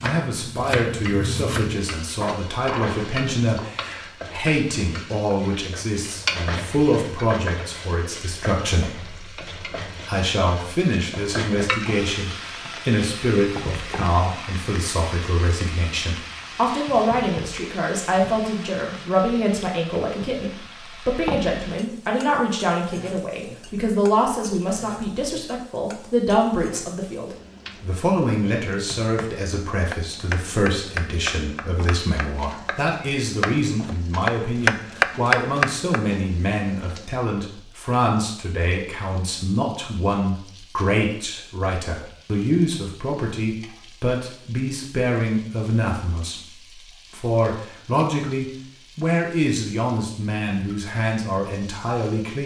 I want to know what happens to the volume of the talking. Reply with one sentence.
The volume of the talking stays about the same.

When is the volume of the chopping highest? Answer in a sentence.
The volume of the chopping peaks at 35 seconds.